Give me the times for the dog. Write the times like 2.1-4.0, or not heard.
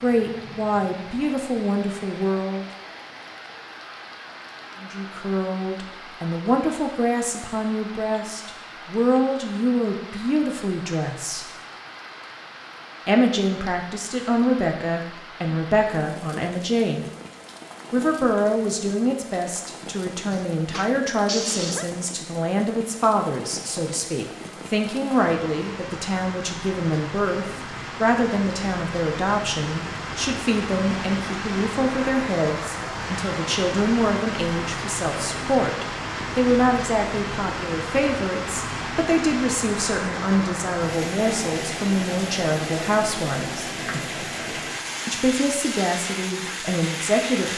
20.3-21.9.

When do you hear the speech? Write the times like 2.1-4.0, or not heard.
0.0-2.6, 4.8-11.4, 13.1-17.1, 17.9-43.6, 45.0-47.5.